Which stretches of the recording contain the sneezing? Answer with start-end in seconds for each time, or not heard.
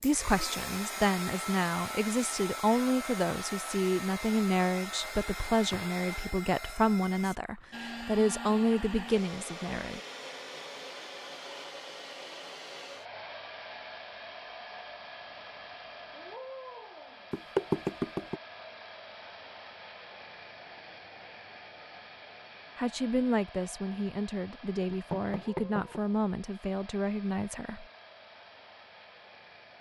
not heard.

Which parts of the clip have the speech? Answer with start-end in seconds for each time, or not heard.
0.0-10.0, 22.8-27.9.